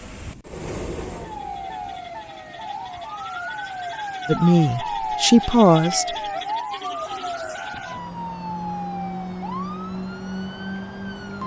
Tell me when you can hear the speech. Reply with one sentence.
The speech can be heard from 4.2 to 6.2 s.